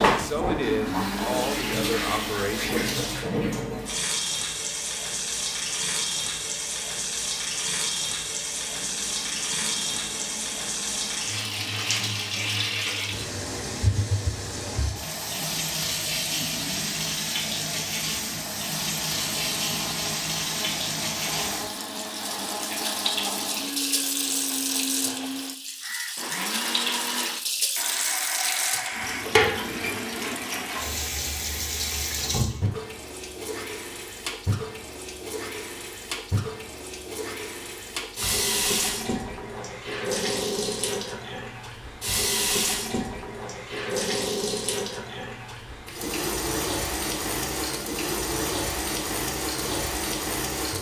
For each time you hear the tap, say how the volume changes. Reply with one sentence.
You can hear the tap from 0.0 to 50.7 s, at a steady volume.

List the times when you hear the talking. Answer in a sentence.
The talking can be heard from 0.1 to 2.8 s.